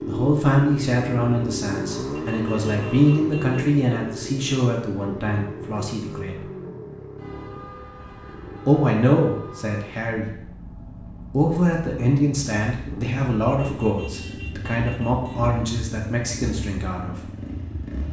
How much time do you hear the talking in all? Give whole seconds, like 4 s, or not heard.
14 s.